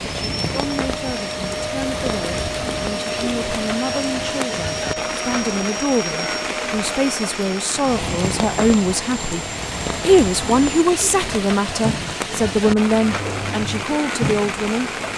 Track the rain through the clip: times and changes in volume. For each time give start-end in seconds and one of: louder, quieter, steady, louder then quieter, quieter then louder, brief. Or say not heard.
0.0-15.1 steady.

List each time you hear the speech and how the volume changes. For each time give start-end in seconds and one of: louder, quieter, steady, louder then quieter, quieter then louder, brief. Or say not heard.
0.1-14.9 louder.